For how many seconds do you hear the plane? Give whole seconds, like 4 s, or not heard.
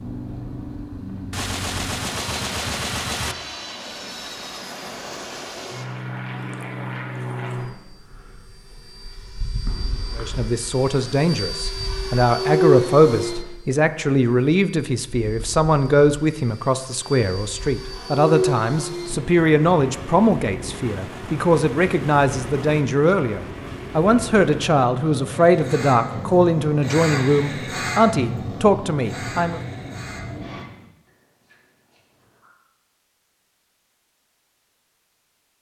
31 s.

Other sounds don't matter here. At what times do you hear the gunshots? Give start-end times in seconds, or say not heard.
1.3-3.4, 20.8-22.8.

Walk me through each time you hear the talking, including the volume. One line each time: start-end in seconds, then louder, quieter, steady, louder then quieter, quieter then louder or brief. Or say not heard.
10.2-29.6 steady.